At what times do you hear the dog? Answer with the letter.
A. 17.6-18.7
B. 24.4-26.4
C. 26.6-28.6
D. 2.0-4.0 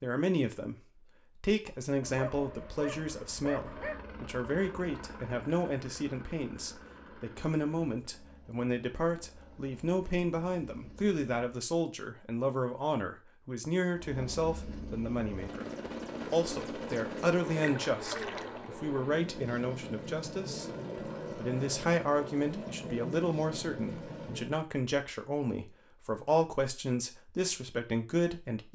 D.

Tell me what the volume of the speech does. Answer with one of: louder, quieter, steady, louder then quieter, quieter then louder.
steady.